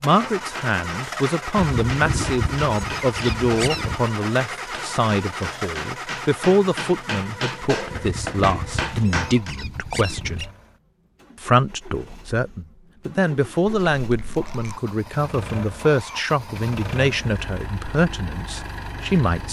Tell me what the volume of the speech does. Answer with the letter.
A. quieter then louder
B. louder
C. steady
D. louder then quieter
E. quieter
C.